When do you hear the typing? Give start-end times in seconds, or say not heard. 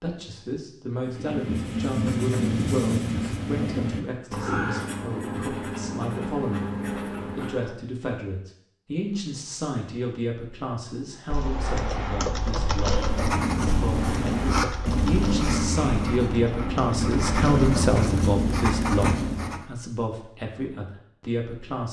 11.3-17.9.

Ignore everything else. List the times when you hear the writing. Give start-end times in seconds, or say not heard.
1.0-7.8, 12.9-19.6.